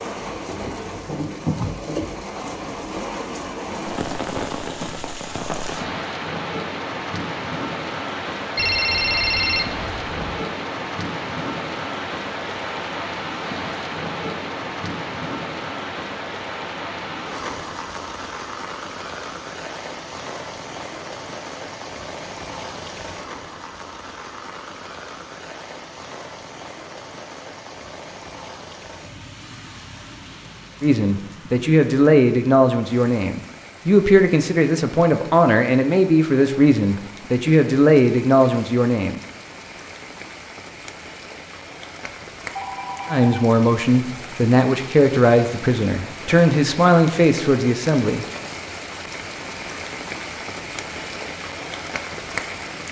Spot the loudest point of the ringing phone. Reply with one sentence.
The loudest moment of the ringing phone is at 9 seconds.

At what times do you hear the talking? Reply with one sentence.
The talking can be heard from 30.8 to 39.2 s and from 43.1 to 48.2 s.